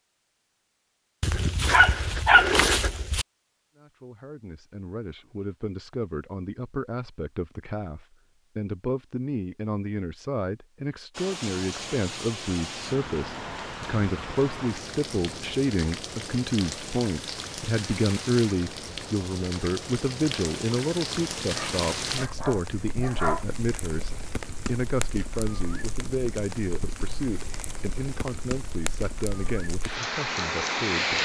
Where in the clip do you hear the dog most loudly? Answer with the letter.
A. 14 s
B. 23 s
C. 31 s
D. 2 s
D.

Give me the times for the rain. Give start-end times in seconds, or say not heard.
11.1-31.2.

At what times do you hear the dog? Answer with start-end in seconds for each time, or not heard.
1.2-3.2, 21.6-23.4.